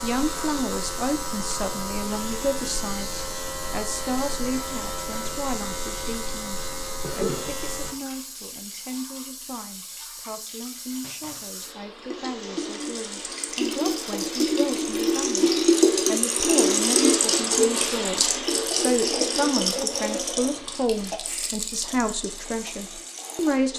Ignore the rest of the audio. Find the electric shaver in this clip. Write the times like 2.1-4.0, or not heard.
0.0-8.0.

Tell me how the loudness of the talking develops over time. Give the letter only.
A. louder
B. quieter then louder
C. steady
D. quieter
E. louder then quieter
B.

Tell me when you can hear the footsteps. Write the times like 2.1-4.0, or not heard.
not heard.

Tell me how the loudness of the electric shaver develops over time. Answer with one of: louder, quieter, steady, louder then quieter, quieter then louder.
steady.